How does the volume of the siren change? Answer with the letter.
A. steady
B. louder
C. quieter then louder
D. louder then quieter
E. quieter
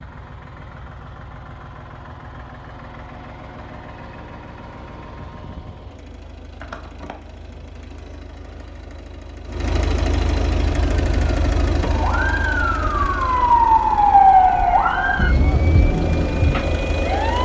D.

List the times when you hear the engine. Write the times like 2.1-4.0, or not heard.
0.0-17.4.